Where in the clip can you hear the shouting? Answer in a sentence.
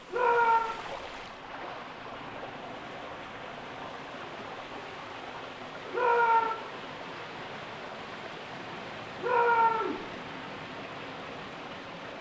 You can hear the shouting from 0.1 to 0.7 s, from 5.9 to 6.5 s and from 9.2 to 10.0 s.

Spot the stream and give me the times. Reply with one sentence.
The stream can be heard from 0.0 to 12.1 s.